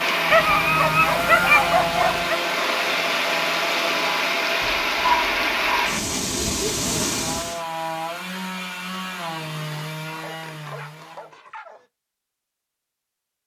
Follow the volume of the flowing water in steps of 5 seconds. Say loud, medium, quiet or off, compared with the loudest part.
loud, loud, off.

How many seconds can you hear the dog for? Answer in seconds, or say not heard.
6 s.